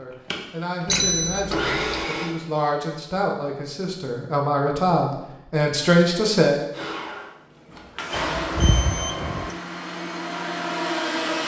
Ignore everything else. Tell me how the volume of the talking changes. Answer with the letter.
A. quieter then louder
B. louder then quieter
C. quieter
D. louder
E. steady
D.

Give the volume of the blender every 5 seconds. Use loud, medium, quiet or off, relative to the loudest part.
loud, medium, loud.